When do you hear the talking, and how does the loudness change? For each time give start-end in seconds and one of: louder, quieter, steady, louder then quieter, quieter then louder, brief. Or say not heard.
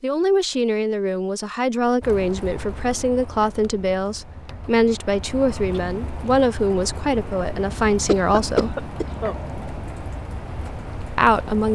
0.0-8.8 steady
11.2-11.7 brief.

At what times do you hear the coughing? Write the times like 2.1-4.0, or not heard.
8.0-9.3.